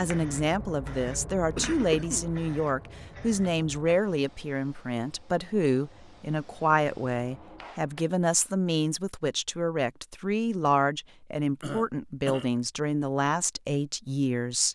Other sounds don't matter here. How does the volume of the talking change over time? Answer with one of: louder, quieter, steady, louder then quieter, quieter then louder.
steady.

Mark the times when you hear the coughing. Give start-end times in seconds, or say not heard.
1.6-2.3, 11.6-12.5.